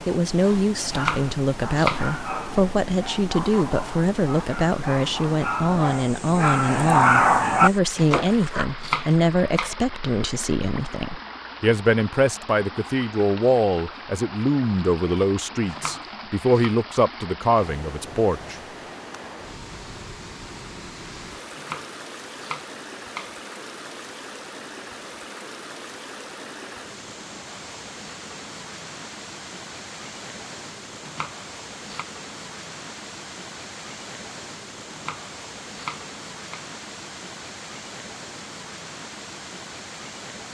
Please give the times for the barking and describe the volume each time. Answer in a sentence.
The barking can be heard from 0.3 to 8.7 s, getting louder.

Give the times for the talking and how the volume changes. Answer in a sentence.
The talking can be heard from 0.1 to 18.6 s, at a steady volume.